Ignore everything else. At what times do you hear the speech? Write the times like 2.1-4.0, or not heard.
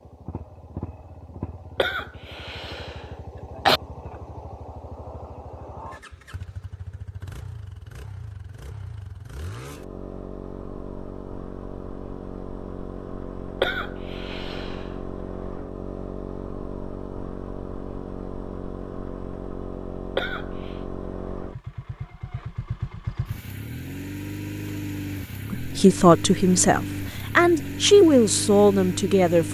25.6-29.4.